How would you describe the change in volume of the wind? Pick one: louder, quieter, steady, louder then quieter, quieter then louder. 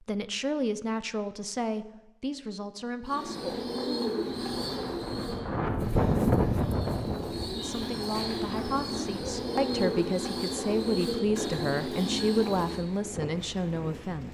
quieter.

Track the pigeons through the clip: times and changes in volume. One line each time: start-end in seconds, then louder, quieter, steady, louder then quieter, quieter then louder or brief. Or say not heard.
3.0-12.8 quieter then louder.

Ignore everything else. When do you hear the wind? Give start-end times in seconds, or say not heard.
4.2-14.3.